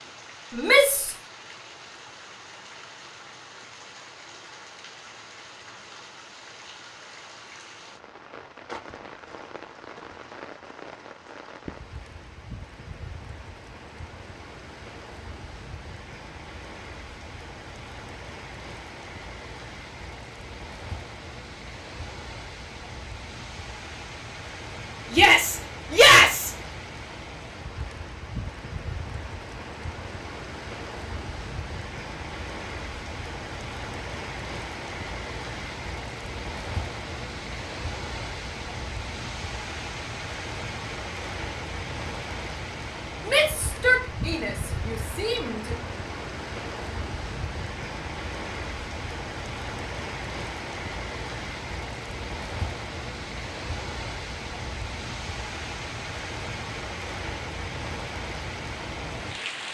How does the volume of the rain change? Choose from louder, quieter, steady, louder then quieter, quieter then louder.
louder.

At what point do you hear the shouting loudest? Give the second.
26 s.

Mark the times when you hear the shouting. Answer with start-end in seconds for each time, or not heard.
0.5-1.1, 25.1-26.5, 43.2-45.8.